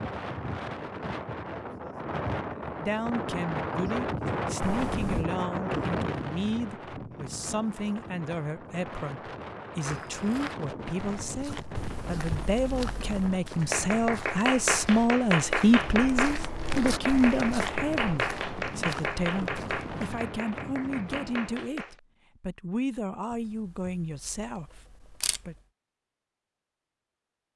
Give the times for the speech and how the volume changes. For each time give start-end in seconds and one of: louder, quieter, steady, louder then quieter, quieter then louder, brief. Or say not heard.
2.8-25.6 louder then quieter.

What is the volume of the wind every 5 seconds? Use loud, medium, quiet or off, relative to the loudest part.
loud, loud, medium, medium, medium, off.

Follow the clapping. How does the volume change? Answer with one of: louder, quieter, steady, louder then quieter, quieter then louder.
quieter.